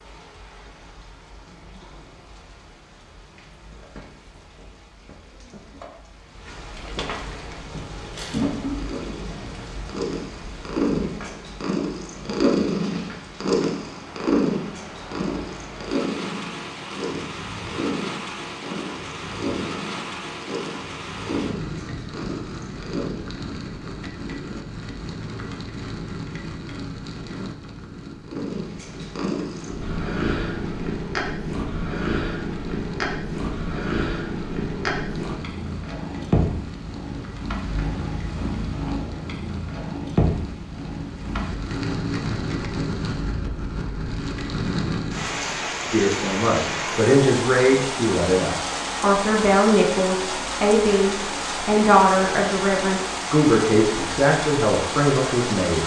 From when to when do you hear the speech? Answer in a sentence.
The speech can be heard from 45.9 to 55.8 s.